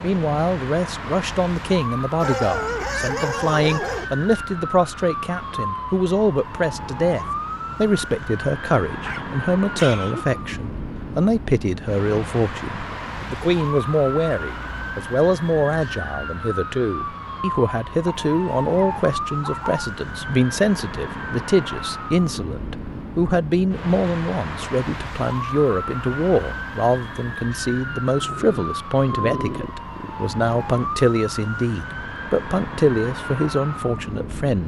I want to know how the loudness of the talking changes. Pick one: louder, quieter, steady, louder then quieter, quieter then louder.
steady.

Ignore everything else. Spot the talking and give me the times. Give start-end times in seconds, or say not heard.
0.0-34.6.